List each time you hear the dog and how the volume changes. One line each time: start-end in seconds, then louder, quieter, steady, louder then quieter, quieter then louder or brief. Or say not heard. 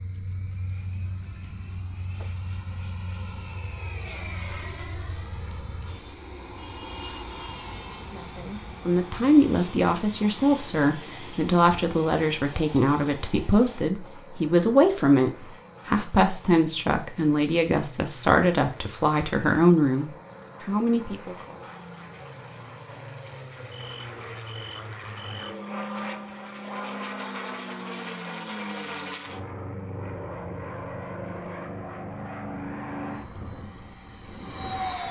not heard.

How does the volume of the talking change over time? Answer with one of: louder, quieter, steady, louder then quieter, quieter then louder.
steady.